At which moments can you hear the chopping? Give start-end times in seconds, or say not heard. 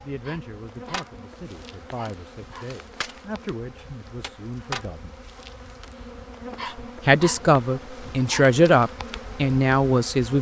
0.9-6.1.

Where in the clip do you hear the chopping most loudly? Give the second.
5 s.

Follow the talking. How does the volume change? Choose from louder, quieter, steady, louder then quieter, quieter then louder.
louder.